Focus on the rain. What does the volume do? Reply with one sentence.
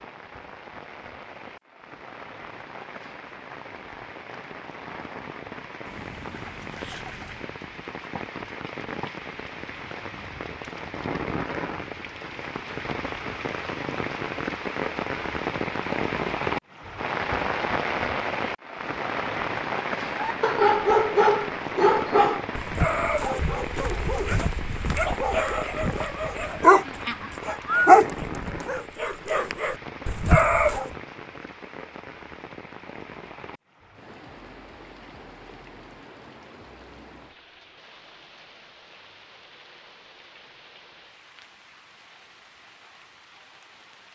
The volume of the rain goes up, then down.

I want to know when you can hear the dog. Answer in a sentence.
You can hear the dog from 20.1 to 30.9 s.